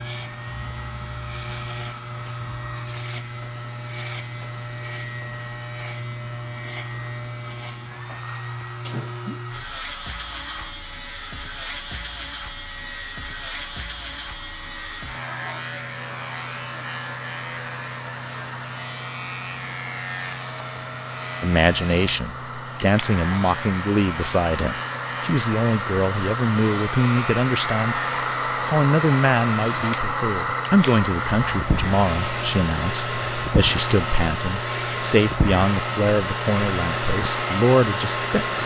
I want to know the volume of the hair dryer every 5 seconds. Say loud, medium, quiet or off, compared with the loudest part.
quiet, quiet, quiet, quiet, medium, loud, loud, loud.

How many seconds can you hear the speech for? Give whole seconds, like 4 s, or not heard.
17 s.